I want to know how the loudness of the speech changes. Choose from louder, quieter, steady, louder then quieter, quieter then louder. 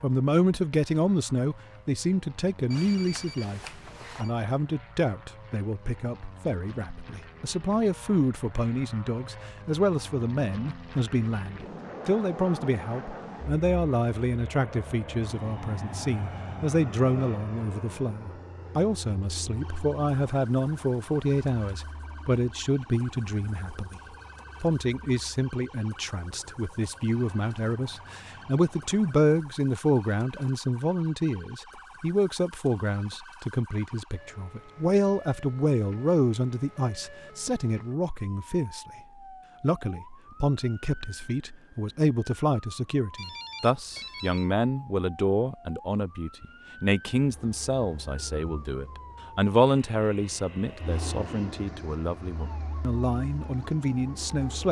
steady.